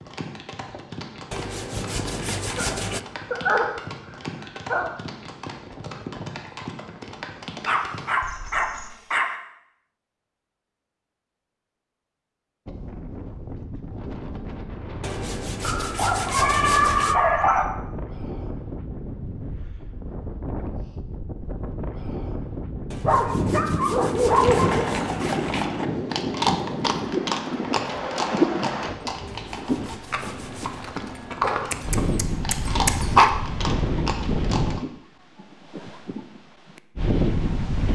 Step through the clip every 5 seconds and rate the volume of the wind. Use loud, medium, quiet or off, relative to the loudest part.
off, off, medium, medium, medium, loud, loud, loud.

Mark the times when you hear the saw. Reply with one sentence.
The saw can be heard from 1.3 to 3.0 s, from 15.0 to 17.1 s, from 22.9 to 25.6 s and from 29.2 to 30.9 s.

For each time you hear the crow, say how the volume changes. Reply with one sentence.
The crow can't be heard in this clip.